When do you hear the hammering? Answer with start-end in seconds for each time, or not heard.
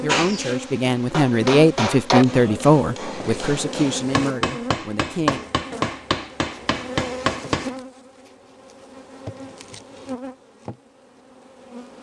0.1-7.8.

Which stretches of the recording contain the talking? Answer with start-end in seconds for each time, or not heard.
0.0-5.5.